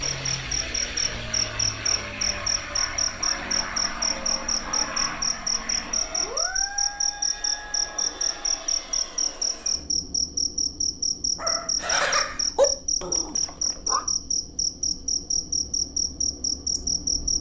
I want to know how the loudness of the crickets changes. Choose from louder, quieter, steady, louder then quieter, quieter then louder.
steady.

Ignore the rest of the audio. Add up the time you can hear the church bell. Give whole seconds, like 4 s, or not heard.
not heard.